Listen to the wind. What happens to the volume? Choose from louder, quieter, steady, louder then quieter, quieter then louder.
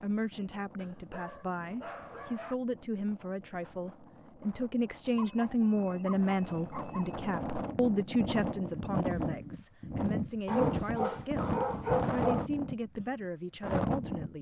louder.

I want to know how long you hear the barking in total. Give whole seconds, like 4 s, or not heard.
6 s.